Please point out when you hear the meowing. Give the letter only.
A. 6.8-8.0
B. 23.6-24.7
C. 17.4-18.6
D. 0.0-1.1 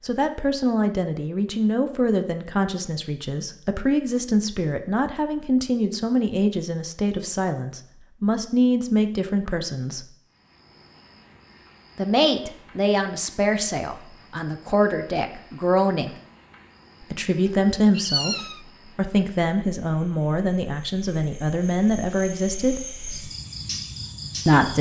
C.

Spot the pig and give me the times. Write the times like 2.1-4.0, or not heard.
not heard.